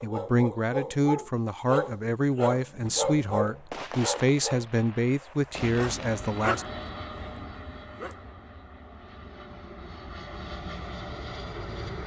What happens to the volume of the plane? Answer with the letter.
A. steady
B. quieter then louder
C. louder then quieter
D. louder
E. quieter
B.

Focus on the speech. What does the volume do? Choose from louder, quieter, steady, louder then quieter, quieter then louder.
steady.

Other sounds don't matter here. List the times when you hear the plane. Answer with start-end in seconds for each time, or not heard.
5.5-12.0.